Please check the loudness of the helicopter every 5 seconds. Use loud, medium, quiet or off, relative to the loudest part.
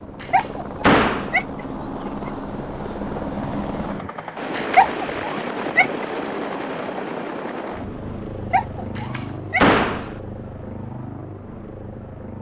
loud, loud, medium.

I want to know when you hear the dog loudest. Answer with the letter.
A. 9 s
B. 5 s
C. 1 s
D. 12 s
B.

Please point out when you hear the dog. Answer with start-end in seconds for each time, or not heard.
0.3-2.3, 4.8-6.1, 8.5-9.8.